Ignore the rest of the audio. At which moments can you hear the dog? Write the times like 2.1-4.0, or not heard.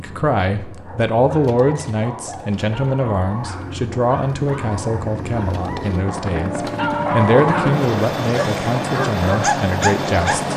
0.8-10.5.